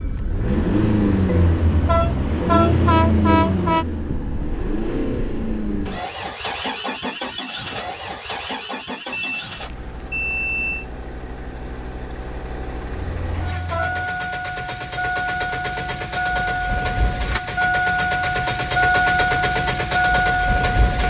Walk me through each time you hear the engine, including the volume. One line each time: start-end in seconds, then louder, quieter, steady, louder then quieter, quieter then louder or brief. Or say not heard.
0.0-21.0 quieter then louder.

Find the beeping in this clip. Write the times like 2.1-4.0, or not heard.
9.1-10.8.